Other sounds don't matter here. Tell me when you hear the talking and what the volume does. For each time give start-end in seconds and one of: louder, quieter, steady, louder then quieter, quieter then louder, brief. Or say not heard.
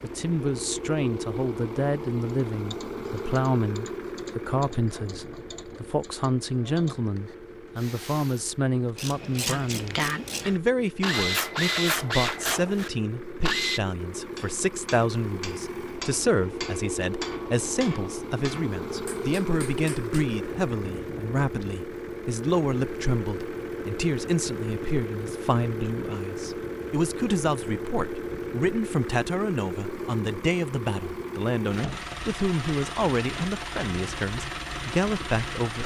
0.0-35.8 steady.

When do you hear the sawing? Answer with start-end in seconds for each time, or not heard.
11.1-12.9.